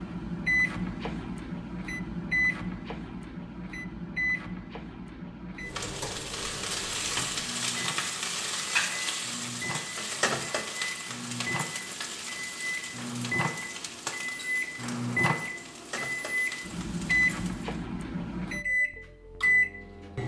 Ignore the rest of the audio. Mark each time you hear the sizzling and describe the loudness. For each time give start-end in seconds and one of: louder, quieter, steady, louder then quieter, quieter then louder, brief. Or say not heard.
5.7-17.8 quieter.